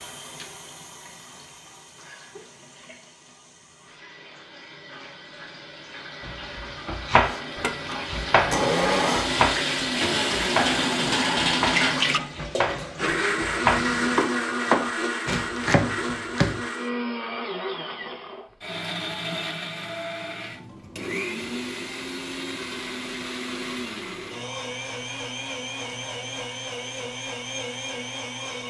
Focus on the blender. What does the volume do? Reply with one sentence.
The volume of the blender goes down.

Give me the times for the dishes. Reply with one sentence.
The dishes can't be heard in this clip.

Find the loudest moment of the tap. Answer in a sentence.
The volume of the tap peaks at 12 seconds.